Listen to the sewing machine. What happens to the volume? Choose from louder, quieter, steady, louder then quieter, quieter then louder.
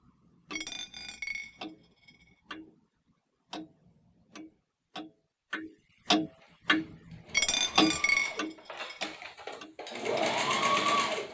louder.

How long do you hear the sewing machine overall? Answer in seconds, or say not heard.
5 s.